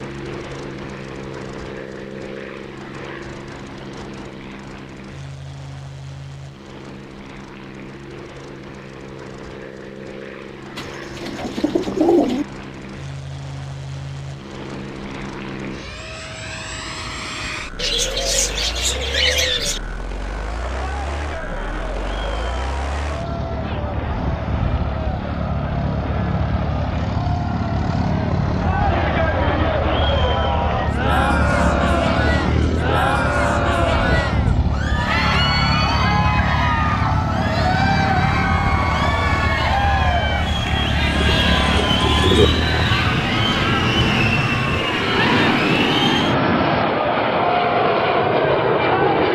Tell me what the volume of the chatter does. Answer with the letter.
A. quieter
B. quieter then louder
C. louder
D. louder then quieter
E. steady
C.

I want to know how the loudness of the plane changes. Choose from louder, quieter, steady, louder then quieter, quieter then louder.
louder.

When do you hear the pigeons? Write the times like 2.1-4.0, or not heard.
10.8-12.4, 17.8-19.8, 41.0-42.5.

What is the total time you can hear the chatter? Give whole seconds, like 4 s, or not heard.
29 s.